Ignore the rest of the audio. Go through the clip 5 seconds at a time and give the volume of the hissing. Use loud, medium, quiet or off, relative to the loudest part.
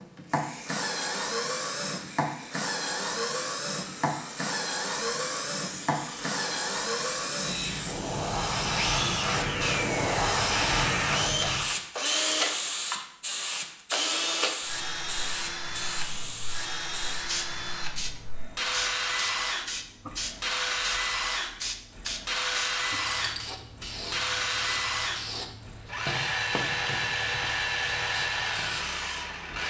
quiet, loud, loud, medium, medium, medium.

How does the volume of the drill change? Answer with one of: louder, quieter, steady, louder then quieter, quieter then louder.
steady.